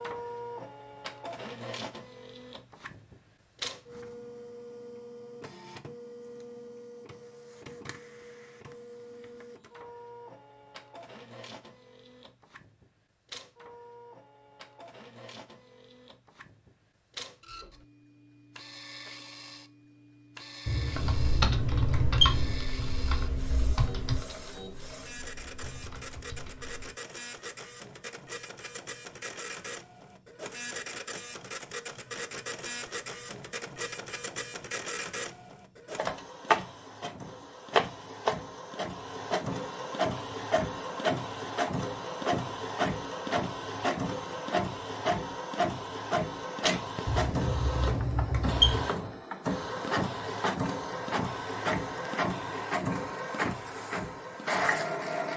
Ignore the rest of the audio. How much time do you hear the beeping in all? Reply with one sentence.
The beeping can be heard for 4 seconds in total.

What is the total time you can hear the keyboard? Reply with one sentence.
The keyboard can be heard for 6 seconds in total.